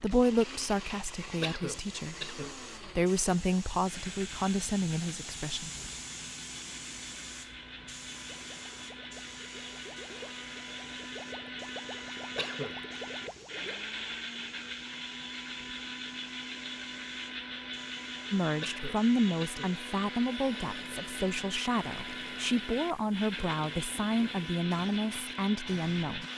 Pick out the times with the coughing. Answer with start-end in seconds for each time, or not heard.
1.4-2.5, 12.3-12.8, 18.6-19.8.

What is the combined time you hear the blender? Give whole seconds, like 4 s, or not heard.
26 s.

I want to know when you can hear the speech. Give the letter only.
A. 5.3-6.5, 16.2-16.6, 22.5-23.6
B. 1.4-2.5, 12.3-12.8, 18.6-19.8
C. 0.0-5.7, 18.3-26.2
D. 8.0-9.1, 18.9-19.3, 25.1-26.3
C.